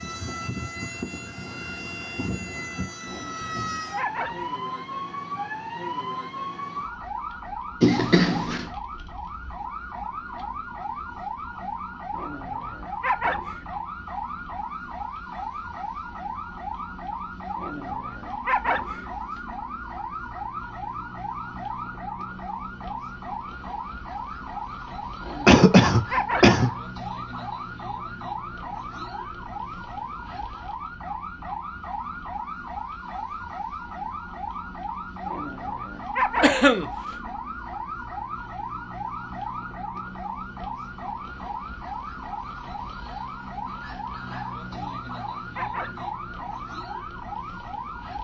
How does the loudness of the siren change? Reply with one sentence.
The loudness of the siren stays about the same.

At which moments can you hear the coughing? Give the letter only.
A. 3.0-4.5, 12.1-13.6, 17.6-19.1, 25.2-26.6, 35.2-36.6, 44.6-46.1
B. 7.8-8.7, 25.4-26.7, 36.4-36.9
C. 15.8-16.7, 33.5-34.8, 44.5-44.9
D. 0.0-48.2
B.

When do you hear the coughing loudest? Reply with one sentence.
The loudest moment of the coughing is at 26 seconds.